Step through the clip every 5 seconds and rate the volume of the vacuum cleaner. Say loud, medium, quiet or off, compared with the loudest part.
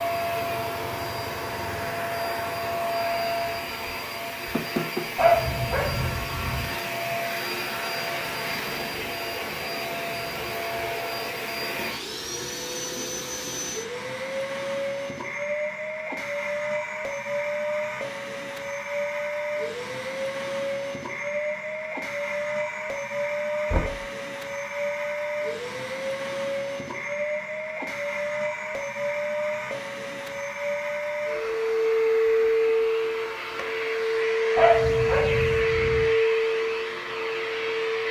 medium, medium, medium, medium, medium, medium, loud, loud.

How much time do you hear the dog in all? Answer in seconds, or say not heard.
3 s.